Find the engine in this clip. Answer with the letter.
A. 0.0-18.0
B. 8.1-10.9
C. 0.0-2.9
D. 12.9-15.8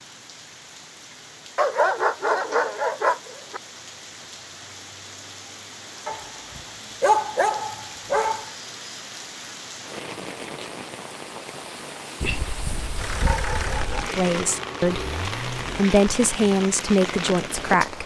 D.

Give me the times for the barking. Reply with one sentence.
You can hear the barking from 1.6 to 3.6 s, from 6.0 to 8.5 s and from 12.2 to 14.1 s.